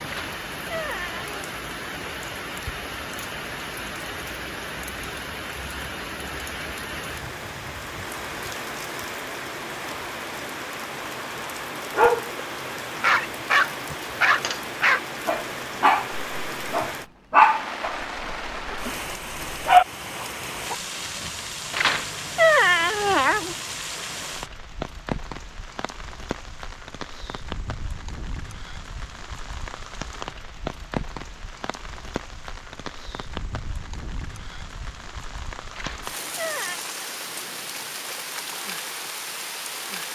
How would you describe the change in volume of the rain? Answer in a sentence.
The loudness of the rain stays about the same.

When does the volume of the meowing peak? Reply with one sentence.
The loudest moment of the meowing is at 23 seconds.